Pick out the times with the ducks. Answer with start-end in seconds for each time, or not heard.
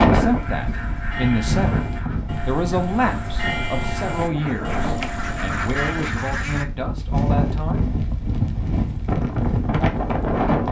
0.1-6.7.